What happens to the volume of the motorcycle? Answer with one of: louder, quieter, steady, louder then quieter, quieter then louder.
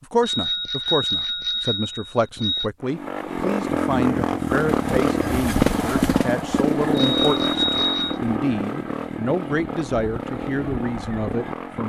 quieter.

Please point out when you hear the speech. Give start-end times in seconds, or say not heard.
0.0-11.8.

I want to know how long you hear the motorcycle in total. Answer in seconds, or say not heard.
9 s.